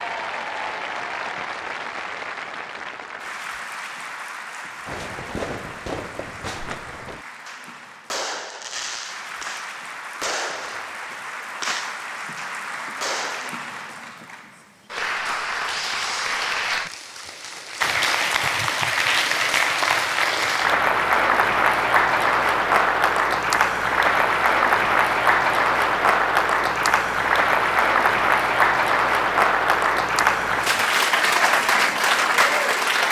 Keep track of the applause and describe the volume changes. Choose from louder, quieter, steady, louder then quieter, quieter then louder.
louder.